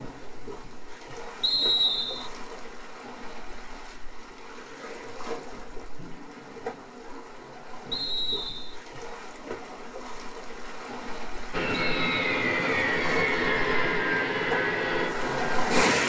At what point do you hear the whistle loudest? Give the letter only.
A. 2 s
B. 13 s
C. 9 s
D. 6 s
A.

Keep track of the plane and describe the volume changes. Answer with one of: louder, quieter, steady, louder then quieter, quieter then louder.
steady.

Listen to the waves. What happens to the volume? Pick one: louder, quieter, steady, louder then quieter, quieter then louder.
louder.